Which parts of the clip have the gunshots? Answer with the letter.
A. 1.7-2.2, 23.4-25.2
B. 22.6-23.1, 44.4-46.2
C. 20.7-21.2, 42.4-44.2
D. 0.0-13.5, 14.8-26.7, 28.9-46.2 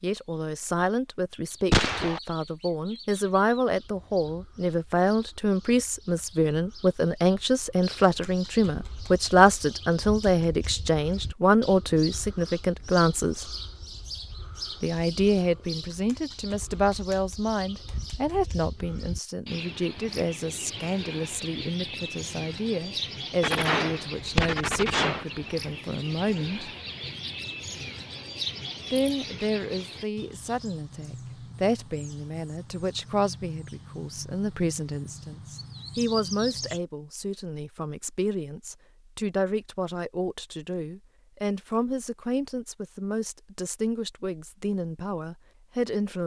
A.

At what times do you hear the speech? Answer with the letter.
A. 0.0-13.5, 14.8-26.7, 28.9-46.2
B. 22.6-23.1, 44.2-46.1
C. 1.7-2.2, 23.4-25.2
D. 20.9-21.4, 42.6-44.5
A.